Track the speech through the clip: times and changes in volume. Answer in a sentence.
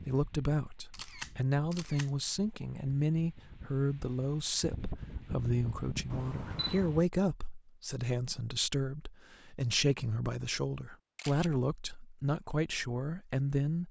The speech can be heard from 0.0 to 13.8 s, at a steady volume.